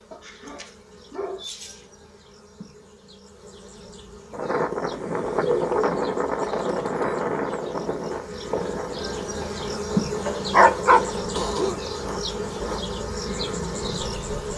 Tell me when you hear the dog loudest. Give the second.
11 s.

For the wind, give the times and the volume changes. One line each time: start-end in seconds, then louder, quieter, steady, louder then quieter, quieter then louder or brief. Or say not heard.
4.3-14.5 quieter.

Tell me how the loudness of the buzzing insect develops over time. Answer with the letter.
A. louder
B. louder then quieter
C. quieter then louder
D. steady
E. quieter
A.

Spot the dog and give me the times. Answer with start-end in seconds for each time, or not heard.
0.1-1.9, 5.2-7.8, 10.2-12.2.